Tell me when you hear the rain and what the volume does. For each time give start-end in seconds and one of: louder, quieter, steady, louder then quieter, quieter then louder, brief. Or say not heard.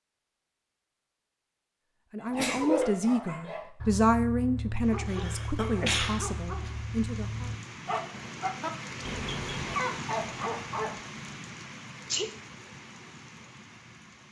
4.8-14.2 louder then quieter.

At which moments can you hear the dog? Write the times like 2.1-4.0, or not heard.
2.2-11.0.